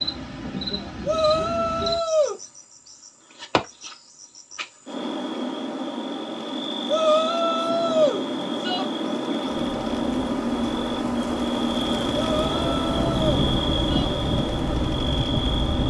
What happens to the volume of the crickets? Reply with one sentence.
The volume of the crickets goes up.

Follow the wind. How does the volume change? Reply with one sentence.
The volume of the wind goes down, then up.